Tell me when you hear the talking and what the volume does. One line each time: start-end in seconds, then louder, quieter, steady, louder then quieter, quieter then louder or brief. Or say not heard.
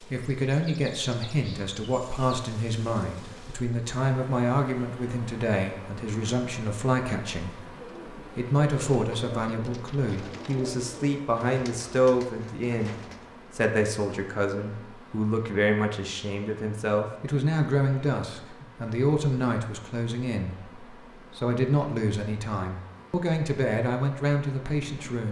0.0-25.2 steady.